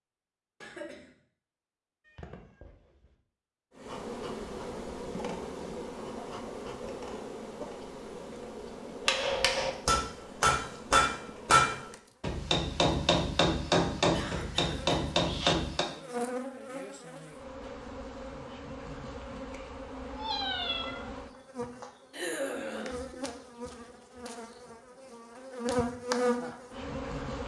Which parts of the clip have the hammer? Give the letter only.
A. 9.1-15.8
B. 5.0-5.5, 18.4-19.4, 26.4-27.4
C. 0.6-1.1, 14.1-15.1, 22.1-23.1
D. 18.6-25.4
A.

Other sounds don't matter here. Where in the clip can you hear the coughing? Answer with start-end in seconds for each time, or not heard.
0.6-1.1, 14.1-15.1, 22.1-23.1.